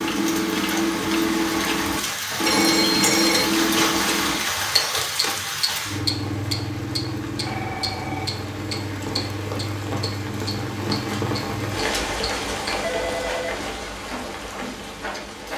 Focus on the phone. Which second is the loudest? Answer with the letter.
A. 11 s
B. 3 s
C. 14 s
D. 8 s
B.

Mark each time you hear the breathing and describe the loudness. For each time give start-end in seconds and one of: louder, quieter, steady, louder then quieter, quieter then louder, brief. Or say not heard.
not heard.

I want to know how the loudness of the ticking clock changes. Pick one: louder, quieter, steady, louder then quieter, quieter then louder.
quieter.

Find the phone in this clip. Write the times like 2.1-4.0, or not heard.
2.5-3.5, 7.5-8.7, 12.8-13.6.